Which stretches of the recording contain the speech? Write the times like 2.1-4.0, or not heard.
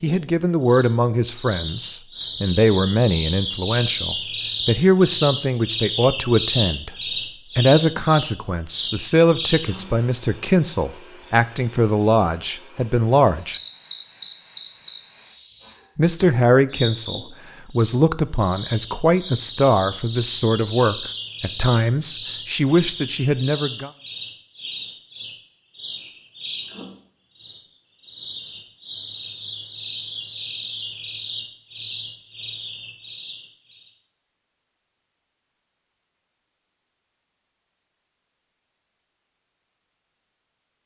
0.0-7.0, 7.5-13.6, 15.9-23.9.